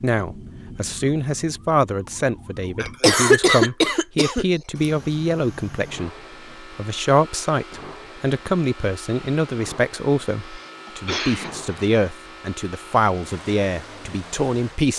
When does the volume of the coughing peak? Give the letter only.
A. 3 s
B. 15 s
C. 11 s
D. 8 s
A.